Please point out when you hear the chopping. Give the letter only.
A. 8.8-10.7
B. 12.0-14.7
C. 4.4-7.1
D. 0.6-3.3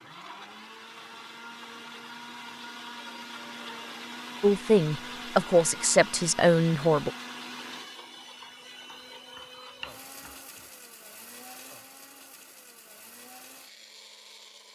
A.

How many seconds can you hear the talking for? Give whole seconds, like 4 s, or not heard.
3 s.